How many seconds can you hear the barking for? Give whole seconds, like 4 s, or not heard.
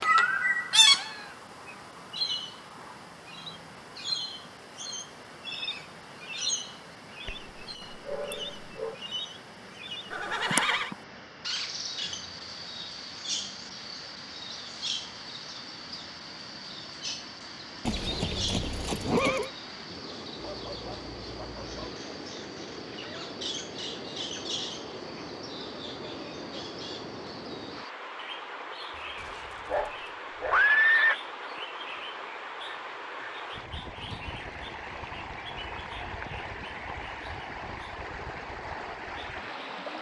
5 s.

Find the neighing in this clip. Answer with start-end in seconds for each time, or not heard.
10.1-10.9, 17.9-19.5, 30.5-31.2.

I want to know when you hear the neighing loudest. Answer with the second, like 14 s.
31 s.